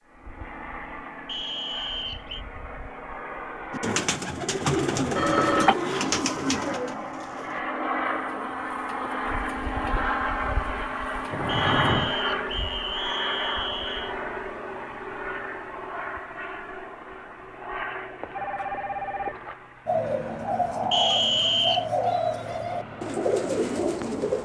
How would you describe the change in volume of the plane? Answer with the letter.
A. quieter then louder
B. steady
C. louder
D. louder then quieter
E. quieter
D.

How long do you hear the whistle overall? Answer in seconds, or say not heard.
5 s.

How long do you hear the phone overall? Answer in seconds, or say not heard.
3 s.